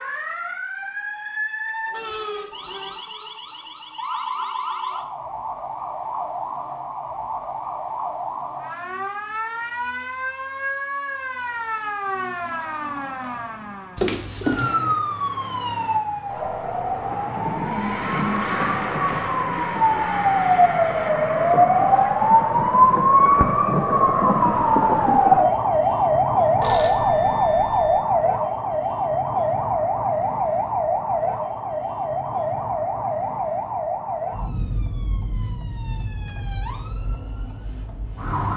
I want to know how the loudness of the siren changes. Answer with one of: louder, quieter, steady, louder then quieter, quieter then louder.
louder then quieter.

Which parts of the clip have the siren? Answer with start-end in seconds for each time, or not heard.
0.0-38.5.